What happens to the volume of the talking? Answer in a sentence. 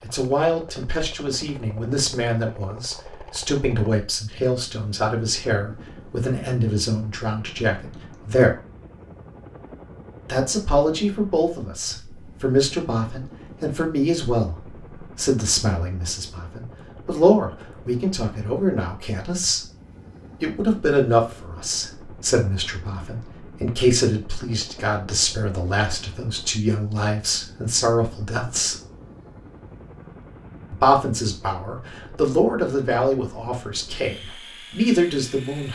The loudness of the talking stays about the same.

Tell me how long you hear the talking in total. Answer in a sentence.
The talking can be heard for 31 seconds in total.